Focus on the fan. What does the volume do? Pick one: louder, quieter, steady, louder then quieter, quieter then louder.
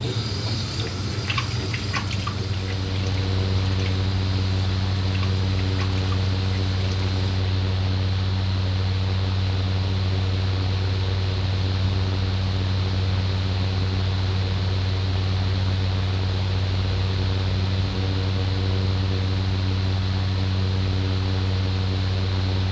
steady.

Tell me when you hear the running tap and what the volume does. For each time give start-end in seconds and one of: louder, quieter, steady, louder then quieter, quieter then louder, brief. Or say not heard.
0.0-7.5 quieter.